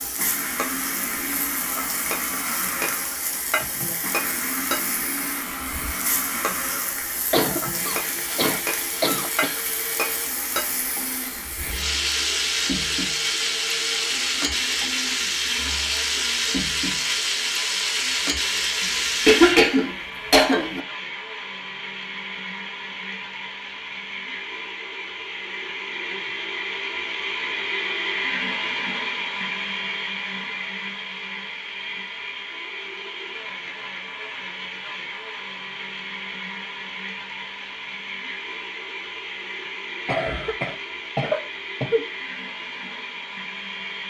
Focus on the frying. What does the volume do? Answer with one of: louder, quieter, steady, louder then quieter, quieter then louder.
louder.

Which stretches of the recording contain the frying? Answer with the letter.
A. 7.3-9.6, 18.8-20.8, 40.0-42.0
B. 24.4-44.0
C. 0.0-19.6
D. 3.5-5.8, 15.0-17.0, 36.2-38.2
C.